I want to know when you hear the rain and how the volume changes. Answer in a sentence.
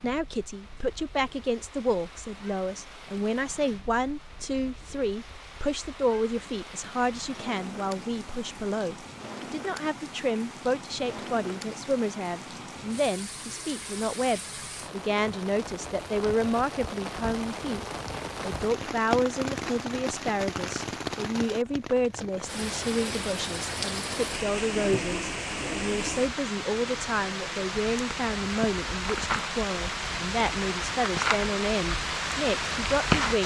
The rain can be heard from 0.0 to 33.4 s, getting louder.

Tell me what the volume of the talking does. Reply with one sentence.
The volume of the talking stays about the same.